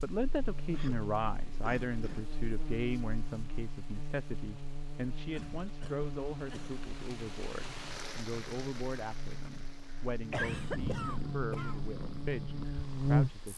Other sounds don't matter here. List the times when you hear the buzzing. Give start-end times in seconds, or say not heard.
0.0-13.5.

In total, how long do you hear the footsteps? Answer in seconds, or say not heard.
not heard.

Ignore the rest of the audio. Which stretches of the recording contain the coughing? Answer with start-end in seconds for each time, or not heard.
0.7-2.3, 5.3-6.8, 9.9-11.8.